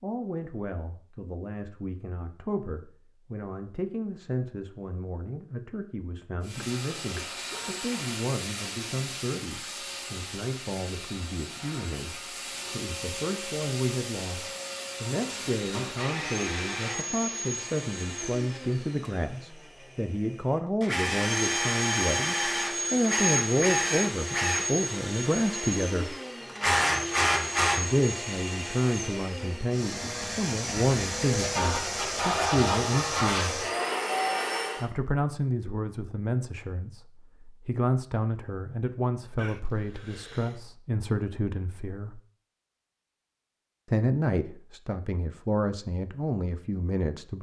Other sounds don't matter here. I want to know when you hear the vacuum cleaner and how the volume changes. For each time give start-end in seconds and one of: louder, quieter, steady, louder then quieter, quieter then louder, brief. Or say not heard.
6.4-34.9 louder.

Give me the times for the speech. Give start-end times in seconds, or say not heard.
0.0-26.1, 27.8-33.6, 34.8-42.2, 43.9-47.3.